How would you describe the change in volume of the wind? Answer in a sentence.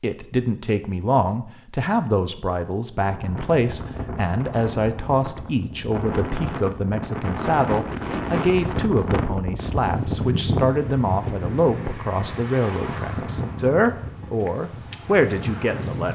The loudness of the wind goes up, then down.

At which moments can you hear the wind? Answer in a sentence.
The wind can be heard from 3.0 to 16.1 s.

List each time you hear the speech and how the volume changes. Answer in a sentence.
You can hear the speech from 0.0 to 16.1 s, at a steady volume.